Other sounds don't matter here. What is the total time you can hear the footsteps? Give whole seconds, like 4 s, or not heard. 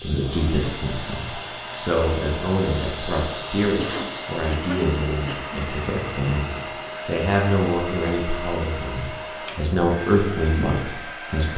not heard.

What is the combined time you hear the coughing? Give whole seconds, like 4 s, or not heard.
2 s.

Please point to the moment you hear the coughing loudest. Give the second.
4 s.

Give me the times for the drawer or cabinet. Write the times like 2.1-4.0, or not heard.
not heard.